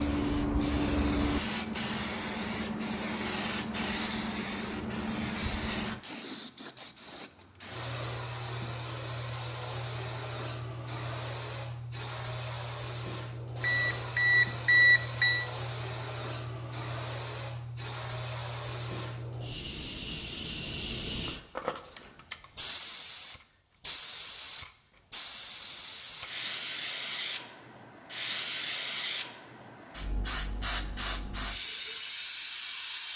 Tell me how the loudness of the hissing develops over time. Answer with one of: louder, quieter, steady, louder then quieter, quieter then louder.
steady.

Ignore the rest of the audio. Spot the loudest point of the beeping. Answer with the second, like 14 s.
15 s.